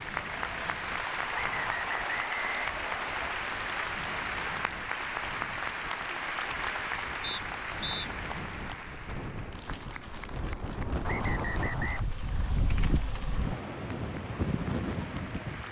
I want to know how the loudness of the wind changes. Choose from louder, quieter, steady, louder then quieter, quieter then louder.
louder.